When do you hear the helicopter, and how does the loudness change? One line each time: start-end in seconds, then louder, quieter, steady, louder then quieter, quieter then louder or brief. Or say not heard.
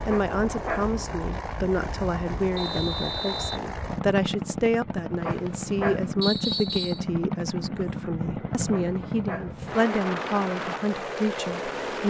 0.0-12.0 steady.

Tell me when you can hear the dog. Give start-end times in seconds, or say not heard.
0.1-0.9, 5.2-6.0, 8.7-9.6.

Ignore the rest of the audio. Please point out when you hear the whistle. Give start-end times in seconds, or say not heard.
2.5-3.6, 6.2-7.0.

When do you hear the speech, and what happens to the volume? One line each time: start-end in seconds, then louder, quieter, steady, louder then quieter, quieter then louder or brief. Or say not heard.
0.0-12.0 steady.